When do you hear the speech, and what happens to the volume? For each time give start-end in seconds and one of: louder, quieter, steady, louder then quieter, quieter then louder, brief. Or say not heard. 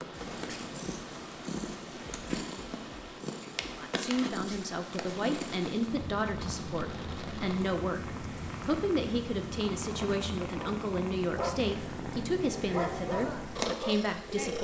3.8-14.6 steady.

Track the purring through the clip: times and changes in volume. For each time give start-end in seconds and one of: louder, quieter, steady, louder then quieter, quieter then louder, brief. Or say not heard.
0.0-14.6 steady.